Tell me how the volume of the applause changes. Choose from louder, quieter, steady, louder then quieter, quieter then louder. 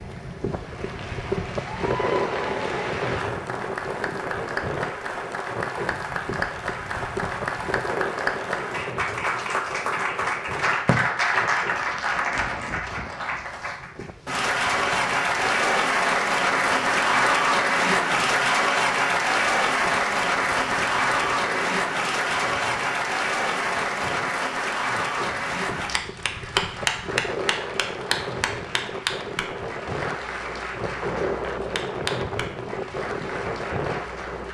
louder then quieter.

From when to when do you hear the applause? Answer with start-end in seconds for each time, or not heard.
0.0-34.5.